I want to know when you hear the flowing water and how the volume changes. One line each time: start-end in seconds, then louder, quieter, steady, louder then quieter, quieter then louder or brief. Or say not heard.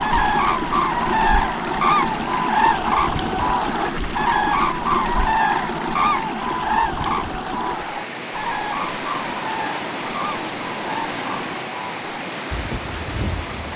0.0-13.7 steady.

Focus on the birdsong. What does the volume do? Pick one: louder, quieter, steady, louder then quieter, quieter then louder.
quieter.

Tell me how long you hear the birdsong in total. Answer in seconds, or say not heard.
14 s.